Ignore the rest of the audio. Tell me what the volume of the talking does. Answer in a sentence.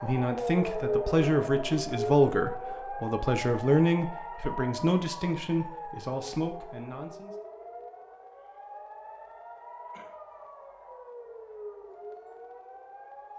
The loudness of the talking goes down.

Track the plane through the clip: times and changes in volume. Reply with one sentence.
The plane can't be heard in this clip.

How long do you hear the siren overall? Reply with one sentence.
The siren can be heard for 13 seconds in total.